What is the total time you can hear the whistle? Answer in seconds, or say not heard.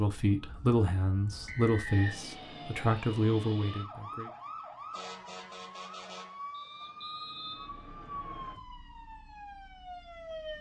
3 s.